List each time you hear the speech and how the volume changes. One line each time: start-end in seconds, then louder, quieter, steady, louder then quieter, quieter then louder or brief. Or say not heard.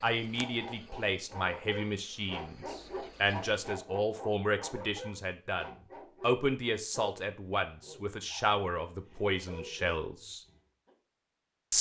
0.0-10.4 steady.